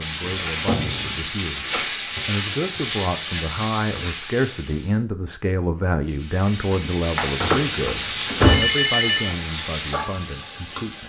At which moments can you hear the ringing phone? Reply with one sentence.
The ringing phone can be heard from 7.4 to 9.3 s.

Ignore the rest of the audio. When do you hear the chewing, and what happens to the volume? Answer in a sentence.
You can't hear the chewing here.